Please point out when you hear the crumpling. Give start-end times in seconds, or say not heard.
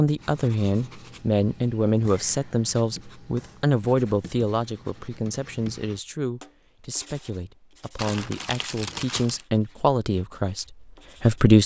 8.0-9.4.